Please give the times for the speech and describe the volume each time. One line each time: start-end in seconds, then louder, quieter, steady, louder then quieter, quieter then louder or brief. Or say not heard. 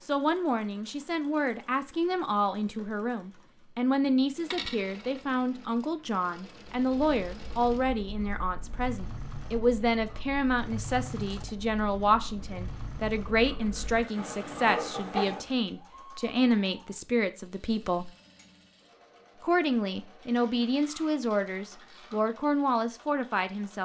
0.0-18.1 steady
19.4-23.8 steady.